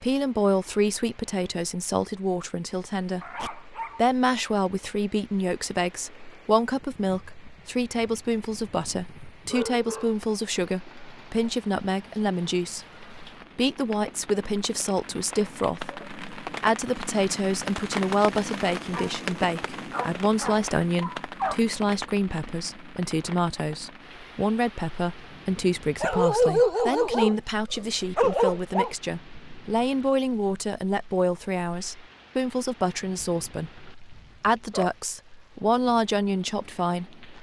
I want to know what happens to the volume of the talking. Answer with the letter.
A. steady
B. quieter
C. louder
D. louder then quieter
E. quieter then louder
A.